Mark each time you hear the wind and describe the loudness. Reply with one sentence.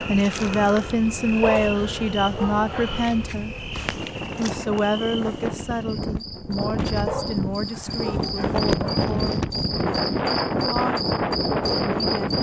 The wind can be heard from 0.0 to 12.3 s, getting louder.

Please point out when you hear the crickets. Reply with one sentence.
The crickets can be heard from 0.0 to 12.3 s.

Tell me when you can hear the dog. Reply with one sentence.
The dog can be heard from 1.4 to 3.0 s and from 7.0 to 9.1 s.